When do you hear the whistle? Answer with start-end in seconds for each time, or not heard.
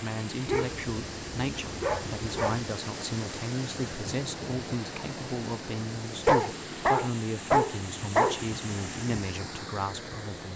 not heard.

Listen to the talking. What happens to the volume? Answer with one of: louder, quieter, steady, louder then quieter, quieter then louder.
steady.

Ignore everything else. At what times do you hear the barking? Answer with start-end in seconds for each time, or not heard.
0.5-2.6, 6.2-8.4.